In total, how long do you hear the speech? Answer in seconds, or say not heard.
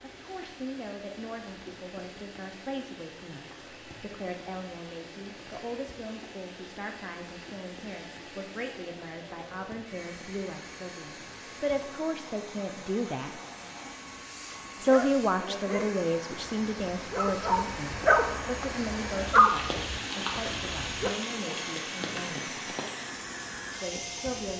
22 s.